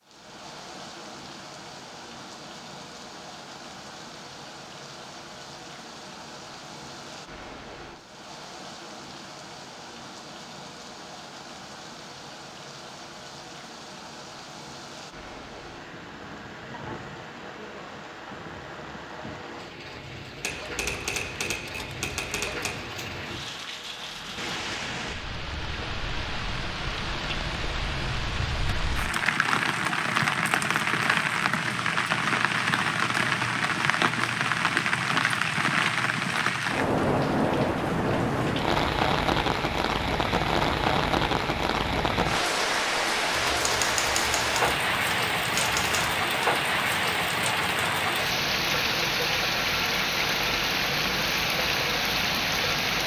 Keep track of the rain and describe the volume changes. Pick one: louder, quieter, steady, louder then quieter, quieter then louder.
louder.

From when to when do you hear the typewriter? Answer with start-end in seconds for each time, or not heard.
20.4-22.8, 43.3-46.1.